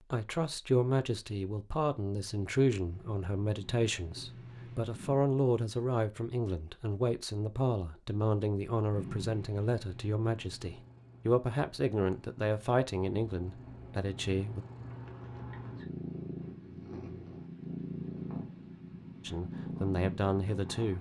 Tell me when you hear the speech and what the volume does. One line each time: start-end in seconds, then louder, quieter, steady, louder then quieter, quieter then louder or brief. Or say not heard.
0.1-14.7 steady
19.2-20.9 brief.